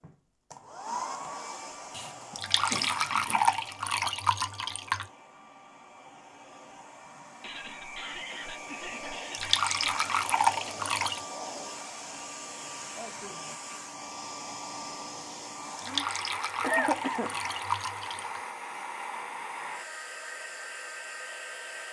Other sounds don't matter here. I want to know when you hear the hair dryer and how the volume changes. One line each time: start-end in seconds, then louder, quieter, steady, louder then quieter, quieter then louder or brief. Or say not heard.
0.0-21.8 quieter then louder.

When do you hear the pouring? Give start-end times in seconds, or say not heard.
2.4-5.0, 9.3-11.2, 15.8-18.4.